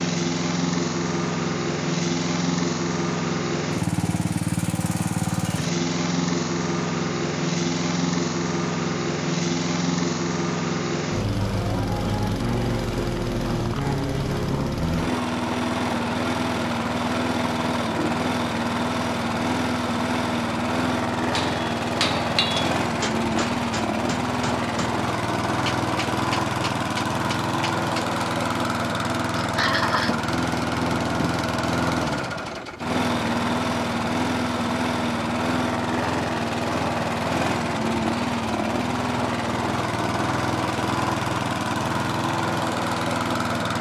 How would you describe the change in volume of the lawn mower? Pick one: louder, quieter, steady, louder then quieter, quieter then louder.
steady.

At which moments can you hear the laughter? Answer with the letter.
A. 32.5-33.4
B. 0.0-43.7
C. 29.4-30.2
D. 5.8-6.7
C.